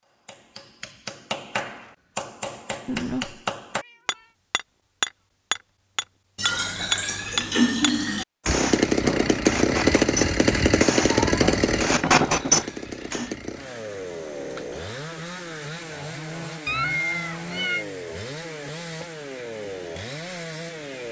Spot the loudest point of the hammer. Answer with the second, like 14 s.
12 s.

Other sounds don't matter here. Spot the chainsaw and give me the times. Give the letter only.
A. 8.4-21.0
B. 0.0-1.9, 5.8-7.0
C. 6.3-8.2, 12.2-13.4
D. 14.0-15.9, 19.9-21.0
A.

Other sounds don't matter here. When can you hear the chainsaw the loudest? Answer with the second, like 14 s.
10 s.